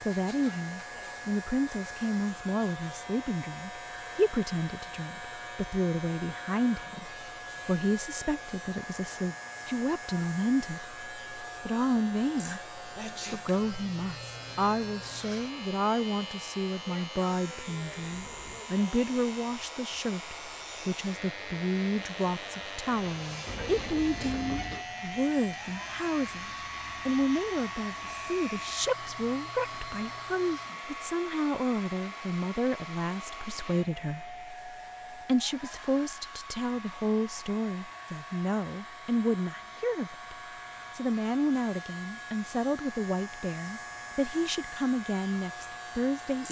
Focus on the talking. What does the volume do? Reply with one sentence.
The volume of the talking stays about the same.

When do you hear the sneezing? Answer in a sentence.
The sneezing can be heard from 12.9 to 13.5 s.